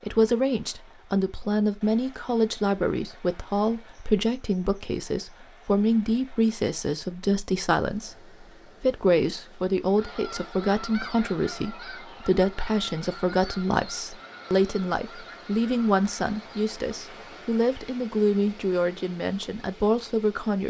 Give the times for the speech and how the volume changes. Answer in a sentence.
You can hear the speech from 0.0 to 20.6 s, at a steady volume.